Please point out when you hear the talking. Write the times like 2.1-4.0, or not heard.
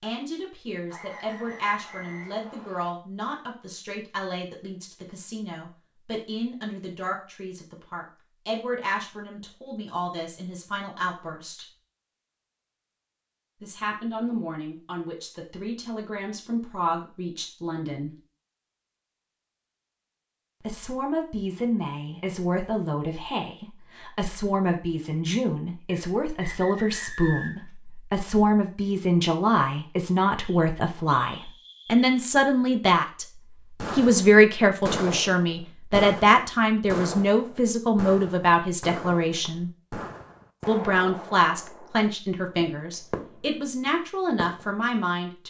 0.0-11.7, 13.6-18.1, 20.6-33.2, 34.0-39.7, 40.6-45.4.